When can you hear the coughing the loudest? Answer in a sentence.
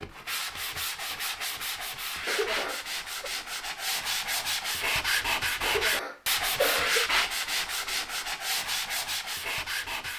The loudest moment of the coughing is at 7 seconds.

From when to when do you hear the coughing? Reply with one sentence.
You can hear the coughing from 2.2 to 3.3 s and from 5.6 to 7.0 s.